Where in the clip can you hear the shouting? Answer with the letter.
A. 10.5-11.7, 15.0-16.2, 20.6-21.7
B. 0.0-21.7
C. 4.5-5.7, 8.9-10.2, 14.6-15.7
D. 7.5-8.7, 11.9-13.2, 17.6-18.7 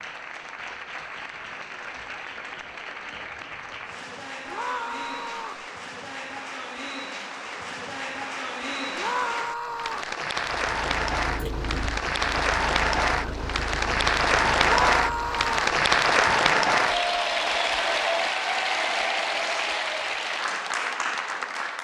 C.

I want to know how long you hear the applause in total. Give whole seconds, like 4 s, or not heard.
22 s.